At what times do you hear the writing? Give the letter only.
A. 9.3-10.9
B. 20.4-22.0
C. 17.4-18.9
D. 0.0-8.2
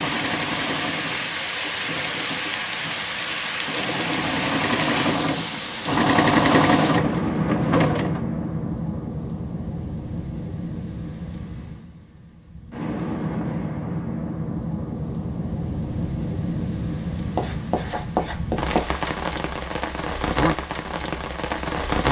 C.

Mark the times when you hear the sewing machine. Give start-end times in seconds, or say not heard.
0.0-8.2.